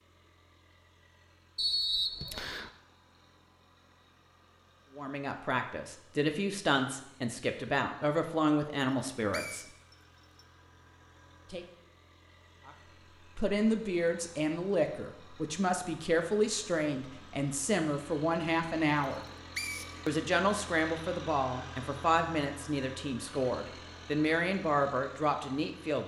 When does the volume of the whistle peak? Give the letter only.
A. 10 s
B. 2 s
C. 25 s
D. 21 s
B.